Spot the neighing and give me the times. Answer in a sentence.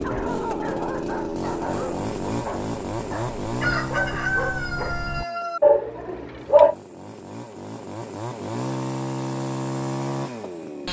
You can't hear the neighing here.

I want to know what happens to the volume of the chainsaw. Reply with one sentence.
The loudness of the chainsaw goes down, then up.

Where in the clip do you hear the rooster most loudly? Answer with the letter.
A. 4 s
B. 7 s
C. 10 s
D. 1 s
A.